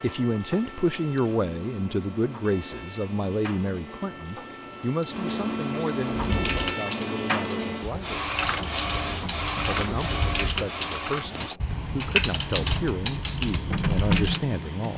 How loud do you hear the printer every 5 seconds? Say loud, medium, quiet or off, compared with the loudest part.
medium, loud, loud.